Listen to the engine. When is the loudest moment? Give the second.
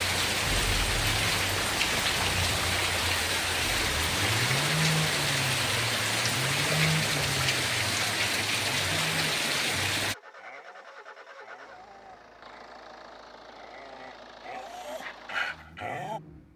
5 s.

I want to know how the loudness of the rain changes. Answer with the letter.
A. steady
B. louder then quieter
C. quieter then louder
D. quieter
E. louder
A.